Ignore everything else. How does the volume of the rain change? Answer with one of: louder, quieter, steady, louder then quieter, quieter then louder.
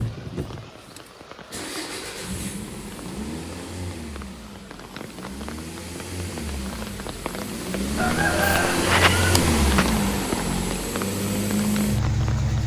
louder.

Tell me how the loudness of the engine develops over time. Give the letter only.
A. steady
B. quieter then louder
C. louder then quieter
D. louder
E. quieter
D.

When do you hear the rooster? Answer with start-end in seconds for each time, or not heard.
8.0-9.8.